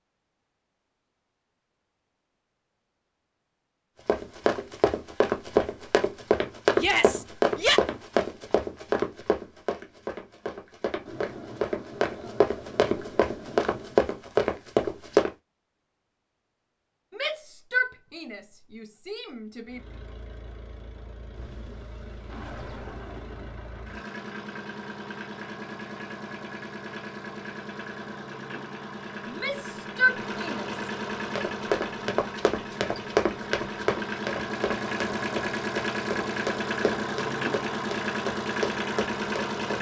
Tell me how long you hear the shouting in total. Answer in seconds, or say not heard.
5 s.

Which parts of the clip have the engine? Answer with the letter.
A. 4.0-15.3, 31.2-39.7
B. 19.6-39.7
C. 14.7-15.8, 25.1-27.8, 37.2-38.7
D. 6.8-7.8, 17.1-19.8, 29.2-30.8
B.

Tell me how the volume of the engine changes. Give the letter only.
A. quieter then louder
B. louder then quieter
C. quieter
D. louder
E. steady
D.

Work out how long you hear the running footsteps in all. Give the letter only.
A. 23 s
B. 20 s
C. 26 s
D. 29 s
B.